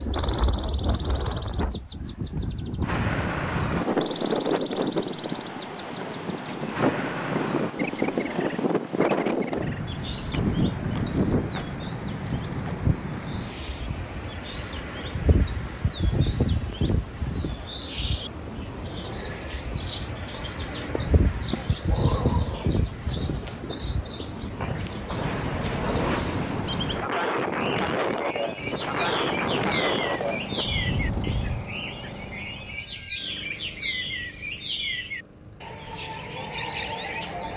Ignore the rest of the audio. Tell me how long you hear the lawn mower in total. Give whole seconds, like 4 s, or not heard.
9 s.